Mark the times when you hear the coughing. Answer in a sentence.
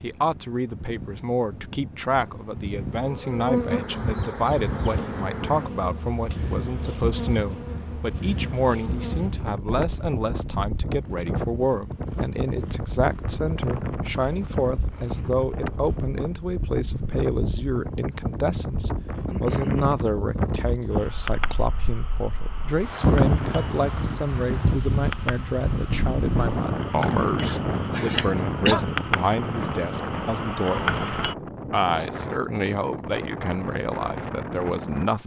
You can hear the coughing from 27.4 to 28.9 s.